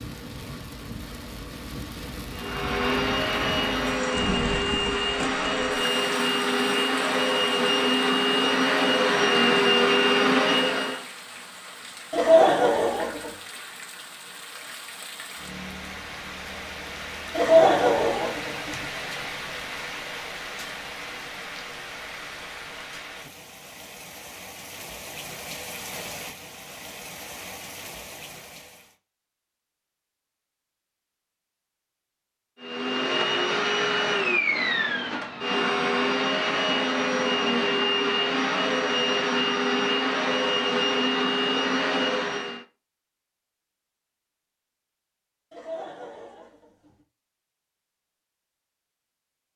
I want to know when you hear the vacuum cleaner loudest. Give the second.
10 s.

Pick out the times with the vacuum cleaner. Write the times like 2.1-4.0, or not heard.
2.3-11.1, 32.6-42.6.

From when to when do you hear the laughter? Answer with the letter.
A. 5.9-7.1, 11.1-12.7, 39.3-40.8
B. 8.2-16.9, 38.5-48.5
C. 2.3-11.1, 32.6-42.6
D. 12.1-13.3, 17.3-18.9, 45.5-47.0
D.